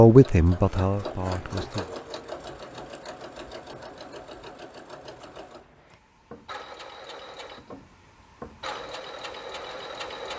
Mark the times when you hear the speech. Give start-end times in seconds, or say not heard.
0.0-1.9.